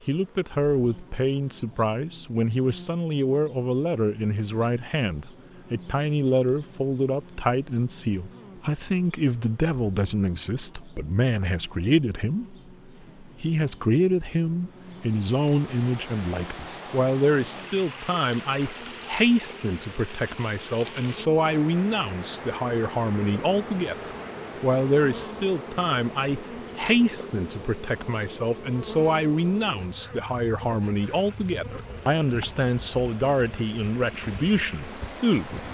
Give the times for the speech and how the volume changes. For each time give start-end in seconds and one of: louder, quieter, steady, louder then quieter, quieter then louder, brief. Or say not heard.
0.1-12.6 steady
13.2-35.6 steady.